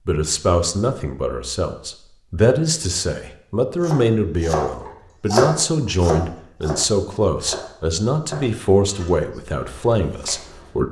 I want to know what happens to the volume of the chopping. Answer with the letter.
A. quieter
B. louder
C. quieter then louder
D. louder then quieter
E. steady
A.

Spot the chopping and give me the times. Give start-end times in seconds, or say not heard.
3.8-10.8.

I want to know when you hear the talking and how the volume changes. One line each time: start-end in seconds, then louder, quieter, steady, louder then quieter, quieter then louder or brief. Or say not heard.
0.1-10.8 steady.